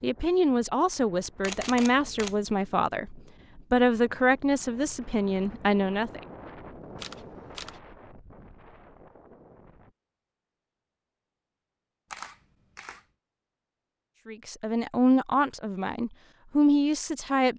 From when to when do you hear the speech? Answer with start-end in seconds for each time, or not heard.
0.0-6.2, 14.2-17.5.